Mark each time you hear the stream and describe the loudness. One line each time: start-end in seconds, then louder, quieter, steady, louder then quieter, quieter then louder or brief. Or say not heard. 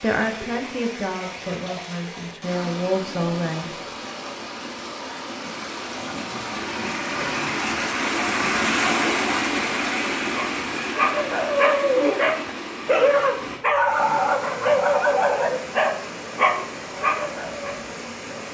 0.0-18.4 louder then quieter.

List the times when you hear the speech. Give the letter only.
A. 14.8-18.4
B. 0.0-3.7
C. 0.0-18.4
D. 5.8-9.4
B.